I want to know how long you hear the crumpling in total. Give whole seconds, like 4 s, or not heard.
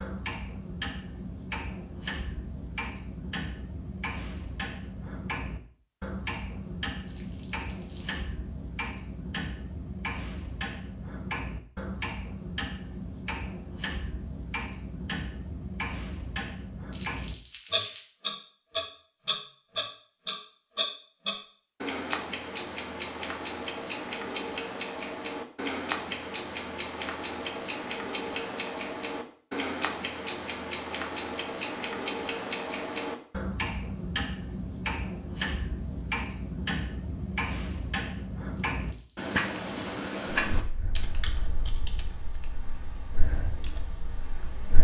3 s.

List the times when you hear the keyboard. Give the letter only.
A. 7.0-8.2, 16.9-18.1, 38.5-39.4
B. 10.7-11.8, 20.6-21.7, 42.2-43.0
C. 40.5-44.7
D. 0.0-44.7
C.